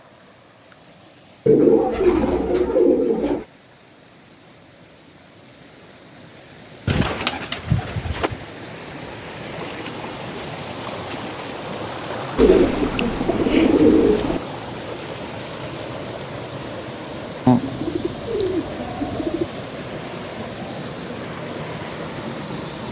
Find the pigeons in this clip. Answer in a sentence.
You can hear the pigeons from 1.4 to 3.5 s, from 6.8 to 8.4 s, from 12.3 to 14.4 s and from 17.4 to 19.4 s.